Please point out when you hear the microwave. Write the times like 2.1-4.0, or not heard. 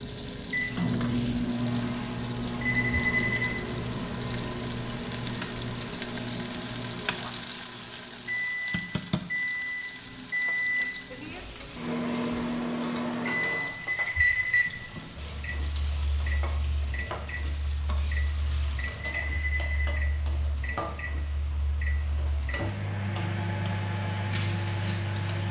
0.0-25.4.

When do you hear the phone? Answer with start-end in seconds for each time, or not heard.
2.6-3.6, 13.8-14.6, 19.1-19.9.